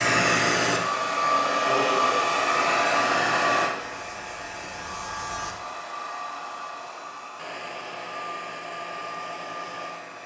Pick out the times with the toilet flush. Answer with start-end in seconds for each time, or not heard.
not heard.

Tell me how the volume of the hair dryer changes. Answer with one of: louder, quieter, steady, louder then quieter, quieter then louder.
quieter.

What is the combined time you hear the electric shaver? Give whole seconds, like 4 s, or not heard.
2 s.